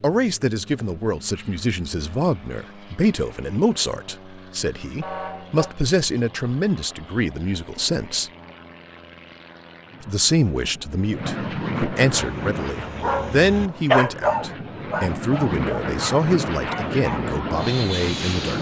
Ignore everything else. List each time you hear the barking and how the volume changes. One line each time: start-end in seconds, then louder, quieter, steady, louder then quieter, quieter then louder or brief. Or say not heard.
12.2-17.2 louder then quieter.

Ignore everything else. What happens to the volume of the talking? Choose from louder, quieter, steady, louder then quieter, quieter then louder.
steady.